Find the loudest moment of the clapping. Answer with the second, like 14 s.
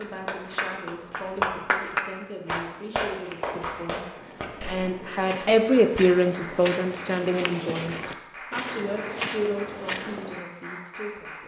2 s.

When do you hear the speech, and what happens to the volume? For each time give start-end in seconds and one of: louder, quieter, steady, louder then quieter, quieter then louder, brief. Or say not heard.
0.0-11.4 louder then quieter.